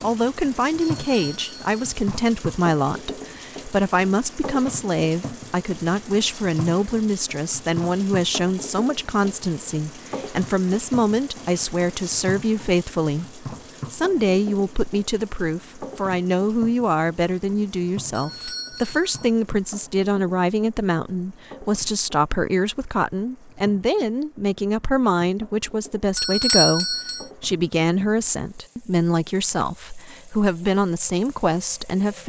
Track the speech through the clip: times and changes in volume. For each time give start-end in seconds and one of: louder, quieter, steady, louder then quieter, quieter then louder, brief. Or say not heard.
0.0-32.2 steady.